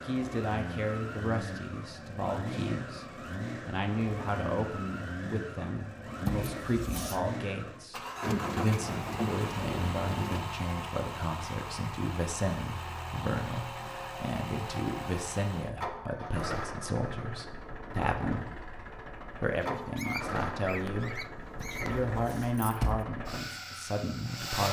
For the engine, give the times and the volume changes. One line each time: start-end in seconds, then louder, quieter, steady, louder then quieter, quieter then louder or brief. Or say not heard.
0.0-24.6 steady.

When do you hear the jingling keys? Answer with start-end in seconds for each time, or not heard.
6.2-7.2, 21.6-23.1.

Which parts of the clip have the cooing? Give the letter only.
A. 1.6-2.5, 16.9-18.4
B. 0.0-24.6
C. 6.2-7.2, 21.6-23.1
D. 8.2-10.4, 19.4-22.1
D.